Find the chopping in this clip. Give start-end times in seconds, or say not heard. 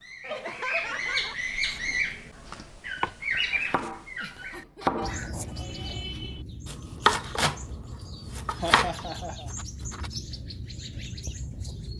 1.6-10.1.